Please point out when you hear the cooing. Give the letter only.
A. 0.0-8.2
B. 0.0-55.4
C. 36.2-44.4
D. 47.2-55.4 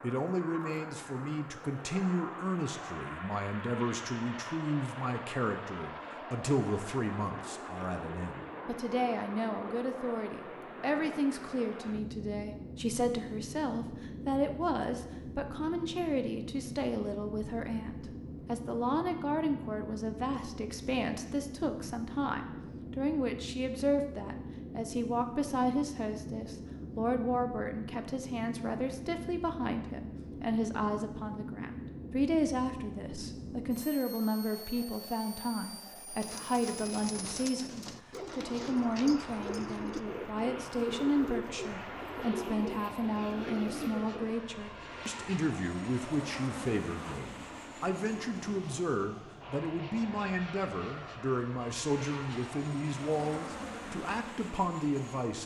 C.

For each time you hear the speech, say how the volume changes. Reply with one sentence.
The speech can be heard from 0.0 to 55.4 s, at a steady volume.